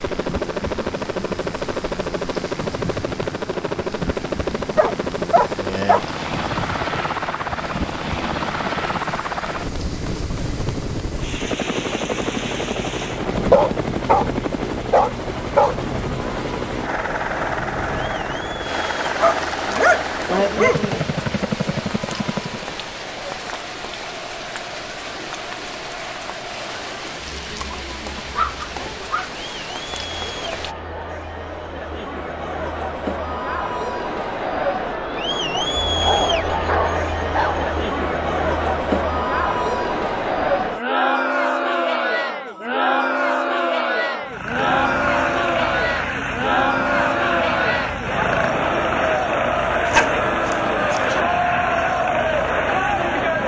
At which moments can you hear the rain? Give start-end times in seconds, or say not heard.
0.0-30.8.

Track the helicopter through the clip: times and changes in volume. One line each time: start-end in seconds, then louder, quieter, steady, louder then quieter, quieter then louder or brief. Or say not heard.
0.0-22.8 steady
44.2-53.4 steady.